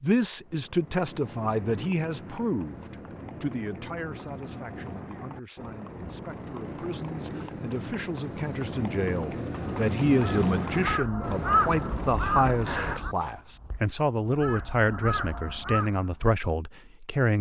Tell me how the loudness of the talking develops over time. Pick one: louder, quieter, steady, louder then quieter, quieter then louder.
quieter then louder.